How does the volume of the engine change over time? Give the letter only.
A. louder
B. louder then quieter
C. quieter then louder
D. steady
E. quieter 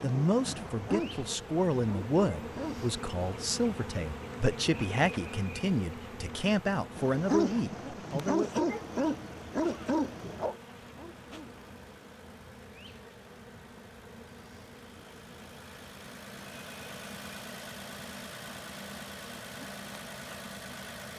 A.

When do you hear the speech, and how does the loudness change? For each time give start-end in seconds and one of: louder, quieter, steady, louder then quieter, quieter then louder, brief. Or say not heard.
0.0-8.6 steady.